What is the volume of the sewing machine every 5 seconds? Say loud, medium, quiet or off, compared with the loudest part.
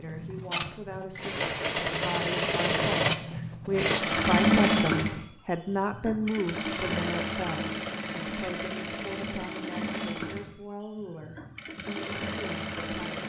loud, medium, medium.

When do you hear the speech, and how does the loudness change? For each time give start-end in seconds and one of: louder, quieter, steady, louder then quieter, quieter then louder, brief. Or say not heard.
0.0-13.2 louder then quieter.